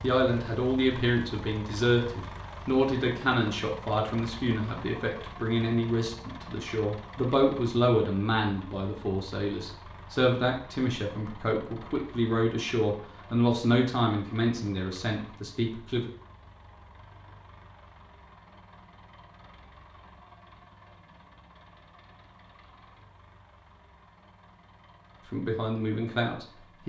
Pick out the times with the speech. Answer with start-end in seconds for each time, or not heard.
0.0-16.1, 25.3-26.8.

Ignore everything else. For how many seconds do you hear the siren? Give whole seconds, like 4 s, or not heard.
not heard.